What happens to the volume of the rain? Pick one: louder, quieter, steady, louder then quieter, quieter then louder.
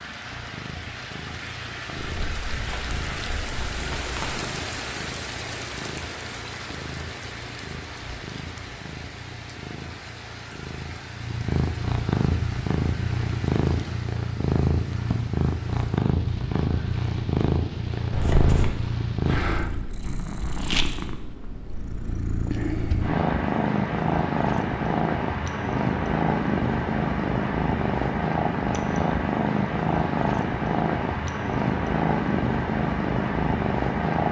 quieter.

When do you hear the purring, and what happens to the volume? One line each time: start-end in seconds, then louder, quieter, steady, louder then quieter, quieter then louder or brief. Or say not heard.
0.0-34.2 louder.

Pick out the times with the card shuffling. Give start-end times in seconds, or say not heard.
1.9-4.4, 18.1-18.8.